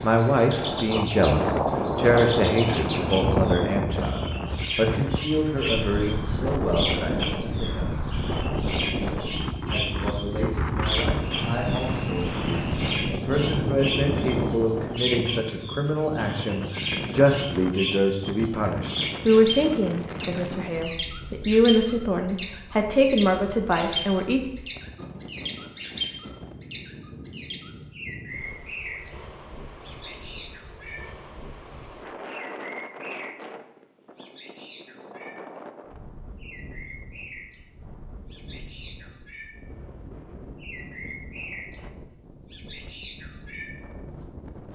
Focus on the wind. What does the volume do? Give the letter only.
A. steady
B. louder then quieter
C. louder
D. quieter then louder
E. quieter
E.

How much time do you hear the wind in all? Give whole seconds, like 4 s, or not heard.
45 s.